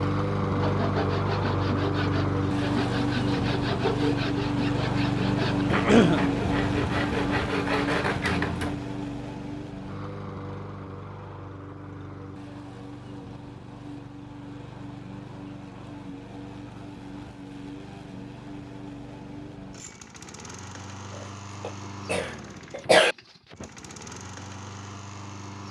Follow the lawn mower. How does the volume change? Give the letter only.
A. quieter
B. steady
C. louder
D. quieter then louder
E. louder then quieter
A.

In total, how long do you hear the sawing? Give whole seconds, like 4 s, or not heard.
8 s.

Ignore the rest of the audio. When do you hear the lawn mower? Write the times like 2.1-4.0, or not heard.
0.0-25.6.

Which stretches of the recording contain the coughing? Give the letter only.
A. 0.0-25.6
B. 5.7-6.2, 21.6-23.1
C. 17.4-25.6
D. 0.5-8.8
B.